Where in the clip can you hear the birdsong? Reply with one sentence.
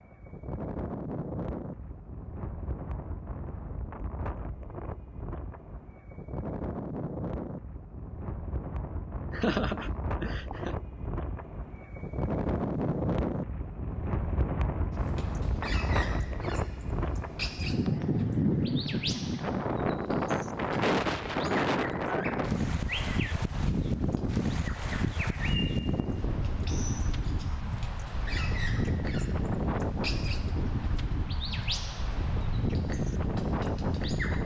The birdsong can be heard from 14.9 to 34.4 s.